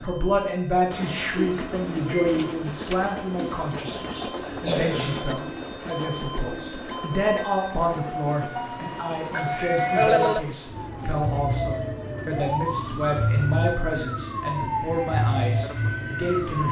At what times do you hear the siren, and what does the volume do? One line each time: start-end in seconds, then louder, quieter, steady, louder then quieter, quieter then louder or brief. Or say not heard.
0.0-16.6 louder.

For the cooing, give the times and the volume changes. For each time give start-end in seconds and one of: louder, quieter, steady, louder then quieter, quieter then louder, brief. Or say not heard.
1.4-7.3 quieter.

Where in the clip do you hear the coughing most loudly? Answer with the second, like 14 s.
10 s.